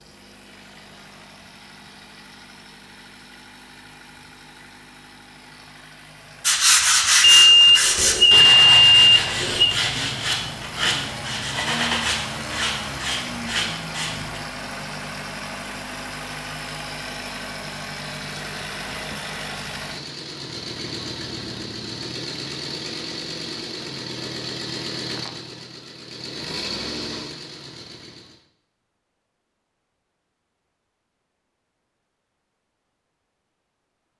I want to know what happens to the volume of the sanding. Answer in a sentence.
The loudness of the sanding goes down.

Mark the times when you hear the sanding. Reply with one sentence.
You can hear the sanding from 6.4 to 14.4 s.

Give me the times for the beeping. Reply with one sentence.
The beeping can be heard from 7.2 to 9.8 s.